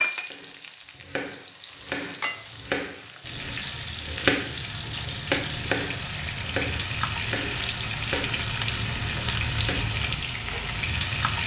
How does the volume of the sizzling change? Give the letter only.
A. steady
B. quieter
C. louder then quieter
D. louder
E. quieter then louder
D.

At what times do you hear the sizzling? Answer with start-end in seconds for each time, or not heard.
0.0-11.4.